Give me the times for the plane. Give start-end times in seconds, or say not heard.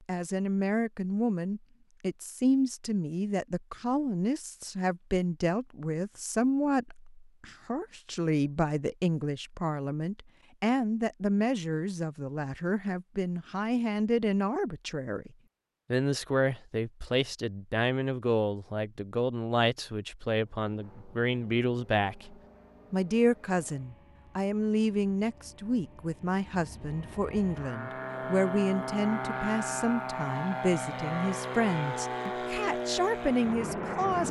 20.4-34.2.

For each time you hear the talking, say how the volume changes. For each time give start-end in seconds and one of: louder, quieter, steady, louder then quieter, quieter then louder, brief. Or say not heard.
0.1-15.3 steady
15.9-34.2 steady.